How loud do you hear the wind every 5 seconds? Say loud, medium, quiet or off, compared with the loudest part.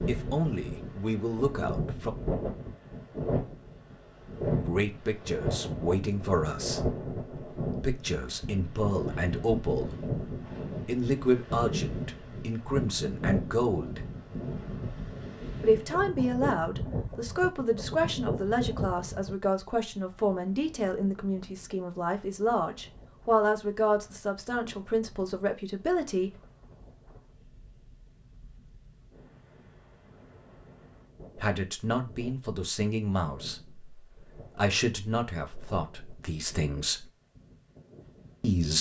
loud, loud, loud, loud, quiet, quiet, quiet, quiet.